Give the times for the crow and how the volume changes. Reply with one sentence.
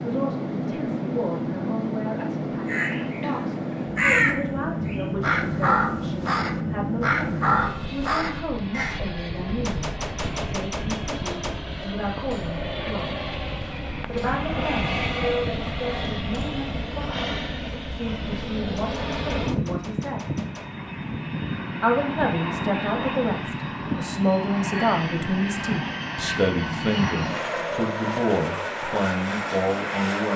The crow can be heard from 2.6 to 9.0 s, at a steady volume.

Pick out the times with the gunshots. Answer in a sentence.
You can hear the gunshots from 9.7 to 11.6 s and from 18.8 to 20.7 s.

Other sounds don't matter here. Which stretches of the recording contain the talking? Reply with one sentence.
You can hear the talking from 0.0 to 13.2 s, from 14.1 to 20.2 s and from 21.8 to 30.3 s.